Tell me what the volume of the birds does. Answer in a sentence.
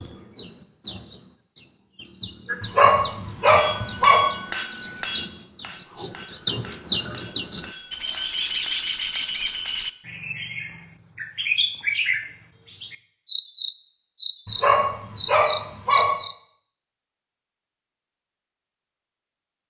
The volume of the birds goes up.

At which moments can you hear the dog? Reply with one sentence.
The dog can be heard from 2.6 to 4.3 s and from 14.4 to 16.1 s.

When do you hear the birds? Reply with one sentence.
You can hear the birds from 0.0 to 16.4 s.